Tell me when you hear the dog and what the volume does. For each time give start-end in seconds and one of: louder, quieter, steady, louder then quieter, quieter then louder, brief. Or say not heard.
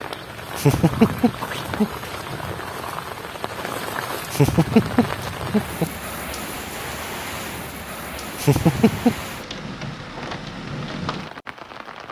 not heard.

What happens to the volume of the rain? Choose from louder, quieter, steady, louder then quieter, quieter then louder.
steady.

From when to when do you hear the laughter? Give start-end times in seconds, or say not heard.
0.6-1.9, 4.3-5.9, 8.4-9.2.